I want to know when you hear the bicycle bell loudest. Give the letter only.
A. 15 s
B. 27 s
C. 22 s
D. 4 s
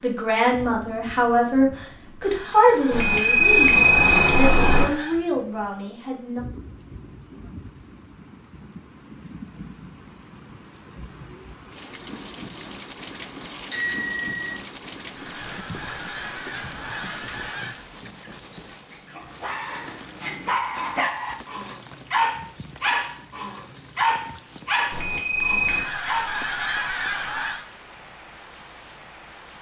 D.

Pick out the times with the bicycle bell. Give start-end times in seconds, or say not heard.
2.9-4.8, 13.7-14.6, 24.9-25.9.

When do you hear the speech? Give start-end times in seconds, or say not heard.
0.0-6.4.